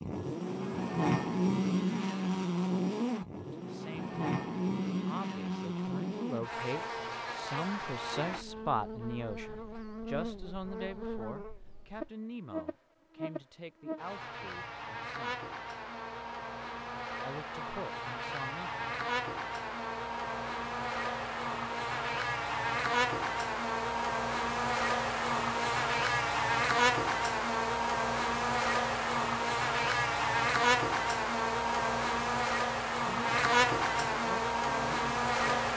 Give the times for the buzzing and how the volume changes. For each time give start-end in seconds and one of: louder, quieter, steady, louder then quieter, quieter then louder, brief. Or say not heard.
0.0-35.7 quieter then louder.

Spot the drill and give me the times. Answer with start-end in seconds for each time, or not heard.
not heard.